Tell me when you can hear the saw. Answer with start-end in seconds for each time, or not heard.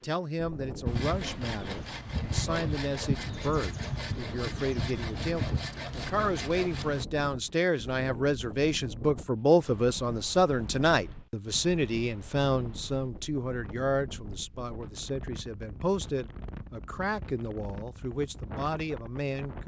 0.8-7.0.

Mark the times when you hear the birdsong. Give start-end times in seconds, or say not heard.
not heard.